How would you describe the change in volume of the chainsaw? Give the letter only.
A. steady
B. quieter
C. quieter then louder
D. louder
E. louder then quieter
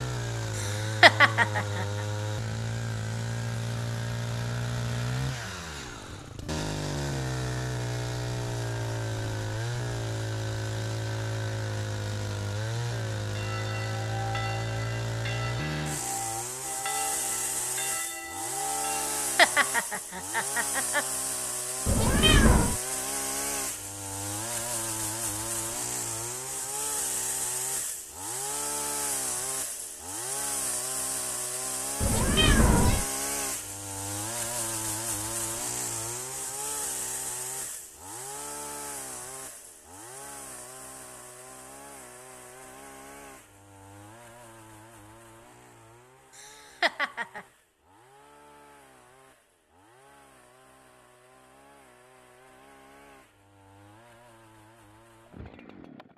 B.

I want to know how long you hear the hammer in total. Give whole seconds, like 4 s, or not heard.
not heard.